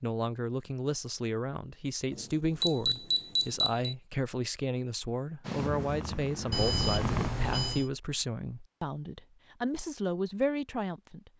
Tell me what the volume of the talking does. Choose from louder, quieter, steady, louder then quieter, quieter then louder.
steady.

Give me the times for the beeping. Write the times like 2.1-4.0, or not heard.
2.1-4.0, 6.5-7.9.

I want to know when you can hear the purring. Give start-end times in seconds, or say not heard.
5.4-7.3.